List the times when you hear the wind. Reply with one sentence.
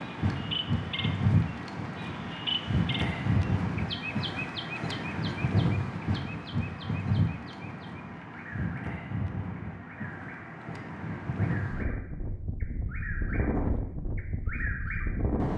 You can hear the wind from 0.0 to 15.5 s.